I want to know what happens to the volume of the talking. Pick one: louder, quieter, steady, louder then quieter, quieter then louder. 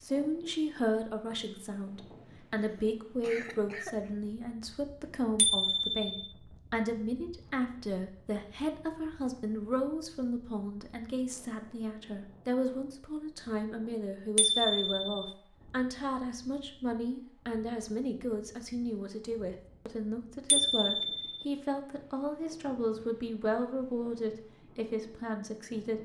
steady.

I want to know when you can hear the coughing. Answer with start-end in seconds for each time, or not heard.
2.5-4.0.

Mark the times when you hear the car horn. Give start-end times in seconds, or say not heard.
not heard.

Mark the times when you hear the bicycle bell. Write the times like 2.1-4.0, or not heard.
5.3-6.2, 14.3-15.2, 20.5-21.3.